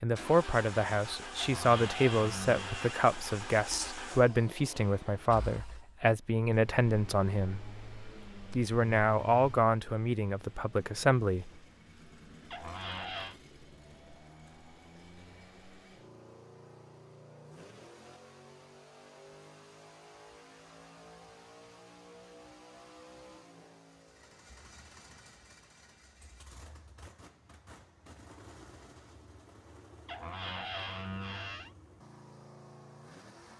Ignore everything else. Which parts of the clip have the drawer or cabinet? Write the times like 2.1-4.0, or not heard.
1.4-3.1, 12.5-13.3, 30.1-31.7.